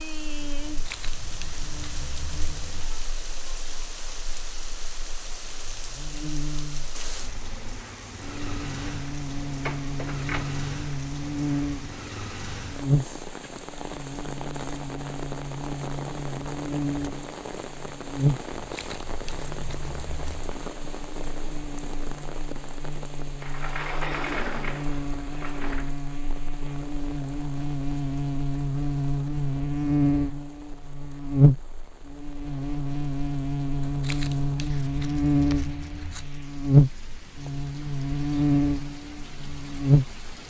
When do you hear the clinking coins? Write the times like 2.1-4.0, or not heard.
not heard.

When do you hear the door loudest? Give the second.
24 s.